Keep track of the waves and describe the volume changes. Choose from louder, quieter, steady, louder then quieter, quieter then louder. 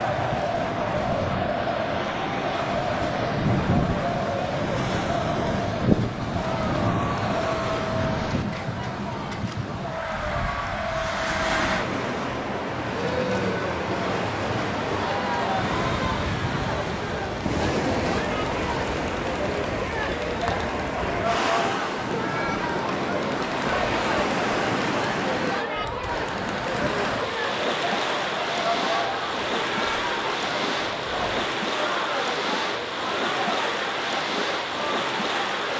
steady.